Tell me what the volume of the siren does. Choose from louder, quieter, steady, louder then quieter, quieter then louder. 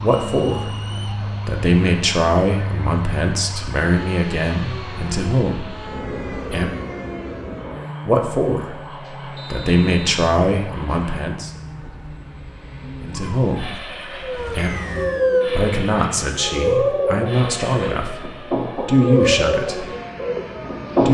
louder.